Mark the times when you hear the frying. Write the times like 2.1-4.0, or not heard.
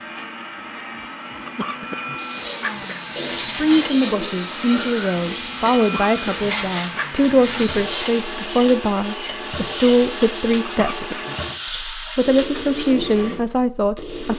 2.1-12.9.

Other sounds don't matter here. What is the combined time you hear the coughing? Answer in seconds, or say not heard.
4 s.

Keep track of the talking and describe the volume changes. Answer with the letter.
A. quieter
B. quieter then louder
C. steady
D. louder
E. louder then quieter
C.